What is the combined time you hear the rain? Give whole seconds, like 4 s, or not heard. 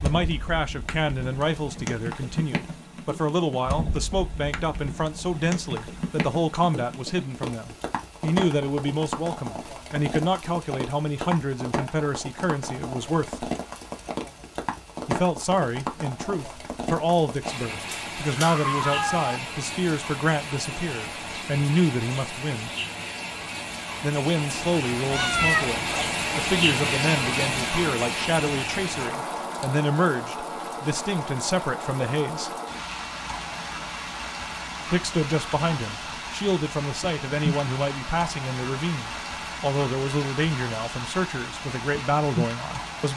43 s.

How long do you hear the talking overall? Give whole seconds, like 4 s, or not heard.
38 s.